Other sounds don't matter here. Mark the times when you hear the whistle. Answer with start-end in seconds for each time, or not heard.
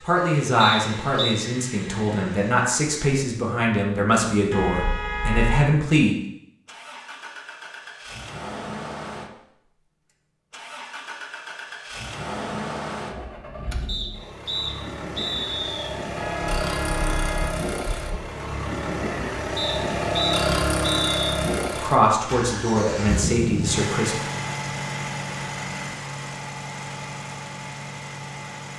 0.6-1.4, 13.8-15.9, 19.6-21.1.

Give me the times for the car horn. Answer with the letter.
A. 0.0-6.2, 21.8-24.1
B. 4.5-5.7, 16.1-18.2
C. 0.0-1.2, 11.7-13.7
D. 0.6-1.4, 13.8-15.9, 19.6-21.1
B.